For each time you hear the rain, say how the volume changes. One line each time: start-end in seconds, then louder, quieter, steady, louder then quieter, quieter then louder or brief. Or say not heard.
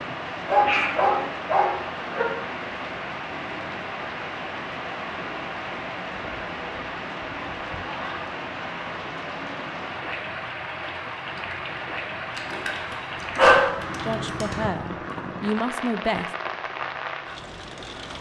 0.0-18.1 steady.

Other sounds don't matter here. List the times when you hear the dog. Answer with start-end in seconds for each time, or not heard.
0.5-2.2, 12.3-14.6.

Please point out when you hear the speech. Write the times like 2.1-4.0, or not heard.
14.1-16.3.